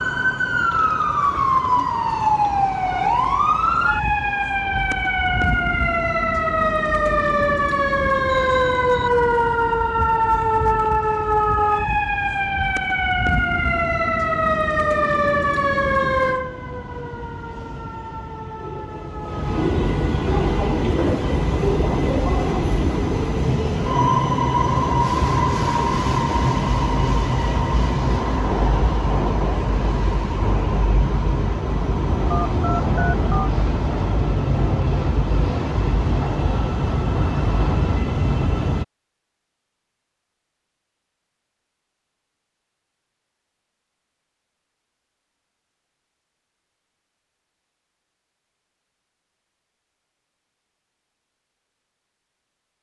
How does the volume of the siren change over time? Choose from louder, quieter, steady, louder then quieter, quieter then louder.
quieter.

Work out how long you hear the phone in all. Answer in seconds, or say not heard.
2 s.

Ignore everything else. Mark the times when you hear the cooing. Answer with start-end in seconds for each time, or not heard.
not heard.